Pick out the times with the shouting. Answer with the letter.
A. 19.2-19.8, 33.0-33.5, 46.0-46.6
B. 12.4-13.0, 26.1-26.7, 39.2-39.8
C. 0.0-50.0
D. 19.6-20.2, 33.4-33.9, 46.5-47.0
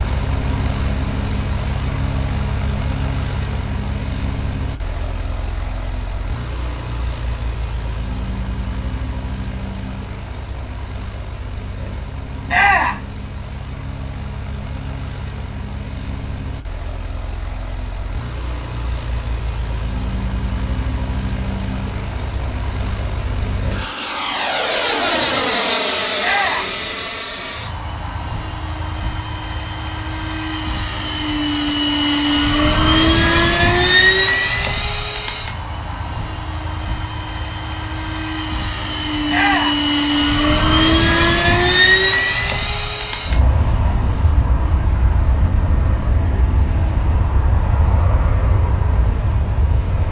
B.